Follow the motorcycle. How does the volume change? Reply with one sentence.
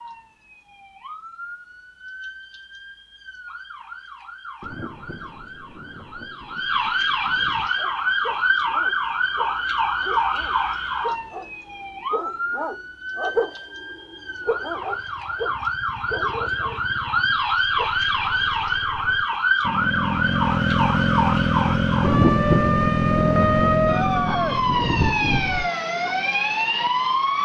The loudness of the motorcycle goes up.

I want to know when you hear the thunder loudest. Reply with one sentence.
The loudest moment of the thunder is at 22 seconds.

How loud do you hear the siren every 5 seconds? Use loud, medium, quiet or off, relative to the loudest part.
quiet, loud, medium, loud, loud, loud.